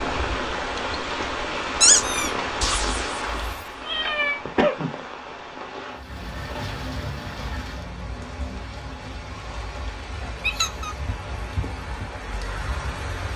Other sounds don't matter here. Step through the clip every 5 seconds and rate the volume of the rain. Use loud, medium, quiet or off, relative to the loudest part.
loud, medium, medium.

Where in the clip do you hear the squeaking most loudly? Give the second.
2 s.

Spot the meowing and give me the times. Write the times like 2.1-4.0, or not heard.
2.6-4.4.